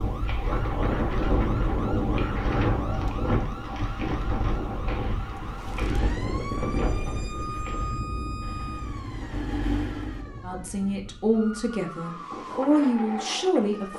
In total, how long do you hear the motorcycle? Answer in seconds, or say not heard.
2 s.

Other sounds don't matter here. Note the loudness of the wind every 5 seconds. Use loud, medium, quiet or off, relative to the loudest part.
loud, medium, quiet.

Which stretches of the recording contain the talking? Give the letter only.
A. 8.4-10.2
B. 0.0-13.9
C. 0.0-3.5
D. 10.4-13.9
D.